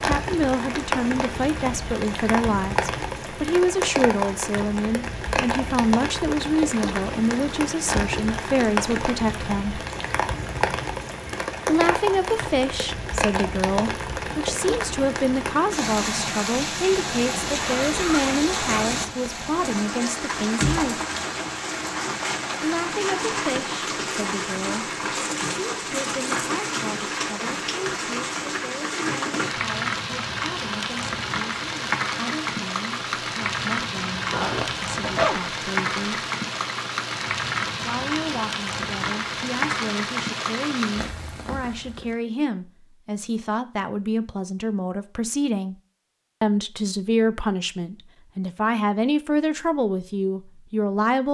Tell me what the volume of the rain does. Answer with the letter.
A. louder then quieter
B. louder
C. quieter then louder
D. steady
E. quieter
D.